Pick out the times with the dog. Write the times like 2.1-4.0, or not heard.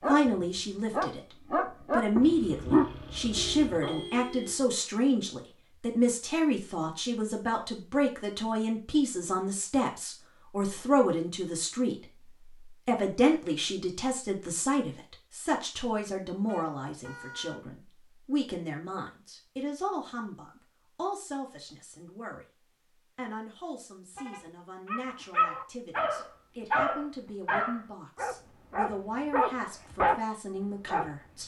0.0-4.0, 24.9-30.1, 30.9-31.4.